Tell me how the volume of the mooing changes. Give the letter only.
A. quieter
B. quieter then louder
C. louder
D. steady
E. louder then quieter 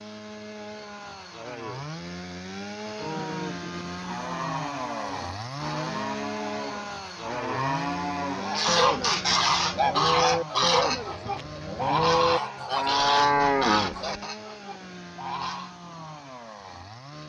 C.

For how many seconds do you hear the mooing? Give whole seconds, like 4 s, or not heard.
11 s.